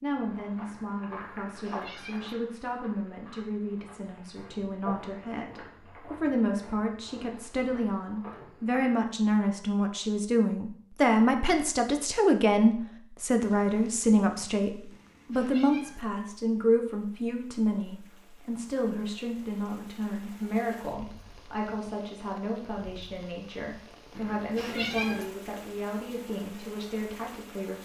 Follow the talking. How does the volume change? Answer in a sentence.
The loudness of the talking goes up, then down.